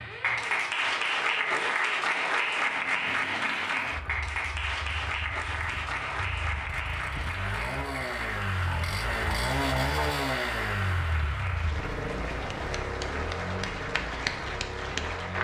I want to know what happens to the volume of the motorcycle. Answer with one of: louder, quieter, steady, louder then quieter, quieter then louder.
louder then quieter.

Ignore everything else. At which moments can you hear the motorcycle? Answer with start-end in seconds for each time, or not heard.
0.0-15.3.